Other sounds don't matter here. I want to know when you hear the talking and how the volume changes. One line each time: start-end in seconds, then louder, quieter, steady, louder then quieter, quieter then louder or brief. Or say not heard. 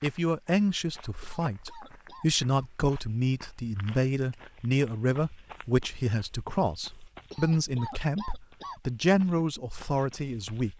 0.0-10.7 steady.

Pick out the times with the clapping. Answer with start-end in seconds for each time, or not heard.
not heard.